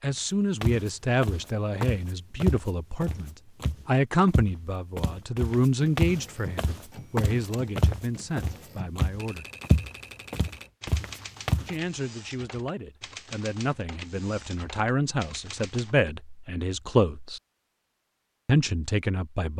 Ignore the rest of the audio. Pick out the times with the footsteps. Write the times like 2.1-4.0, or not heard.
0.6-11.7.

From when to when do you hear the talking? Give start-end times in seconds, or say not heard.
0.0-9.4, 11.7-17.4, 18.4-19.5.